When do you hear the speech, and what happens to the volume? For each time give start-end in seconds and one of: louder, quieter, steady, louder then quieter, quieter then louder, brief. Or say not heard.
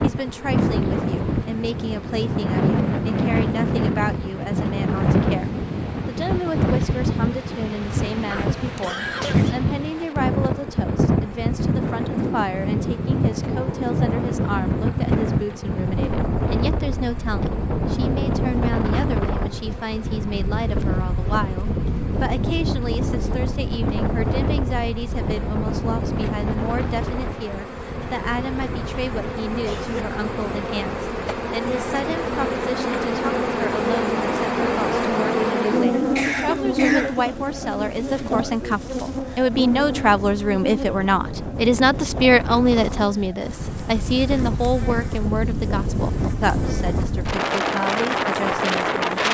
0.0-49.3 louder.